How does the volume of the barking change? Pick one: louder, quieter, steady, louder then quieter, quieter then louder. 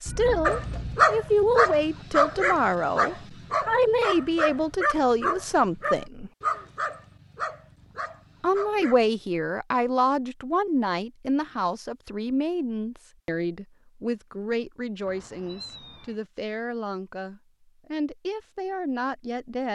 quieter.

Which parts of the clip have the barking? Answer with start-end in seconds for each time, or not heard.
0.5-9.2.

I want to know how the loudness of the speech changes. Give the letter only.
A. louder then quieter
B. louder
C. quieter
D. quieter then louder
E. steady
C.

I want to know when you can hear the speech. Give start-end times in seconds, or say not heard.
0.0-6.3, 8.4-19.7.